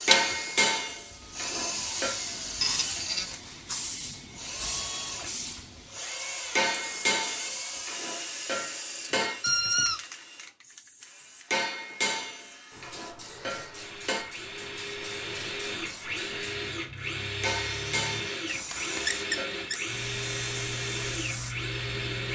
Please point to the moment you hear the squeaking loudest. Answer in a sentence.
The volume of the squeaking peaks at 10 seconds.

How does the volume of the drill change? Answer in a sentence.
The loudness of the drill goes down, then up.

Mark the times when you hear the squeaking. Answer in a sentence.
The squeaking can be heard from 2.6 to 3.2 s, from 9.4 to 10.0 s and from 18.4 to 19.8 s.